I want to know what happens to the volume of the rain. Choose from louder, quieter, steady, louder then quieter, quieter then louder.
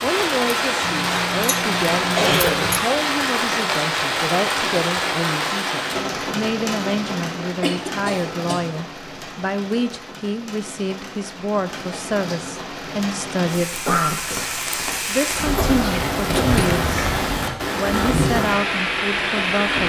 quieter then louder.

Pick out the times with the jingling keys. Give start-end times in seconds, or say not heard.
0.8-2.8, 16.2-16.9.